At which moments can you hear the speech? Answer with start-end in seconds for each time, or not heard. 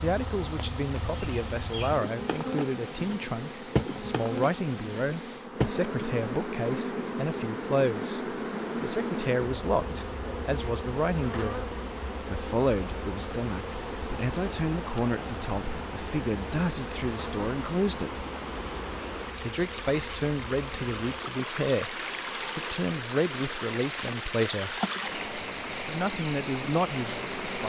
0.0-18.2, 19.3-24.8, 25.9-27.6.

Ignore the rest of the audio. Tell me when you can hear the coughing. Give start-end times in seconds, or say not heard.
not heard.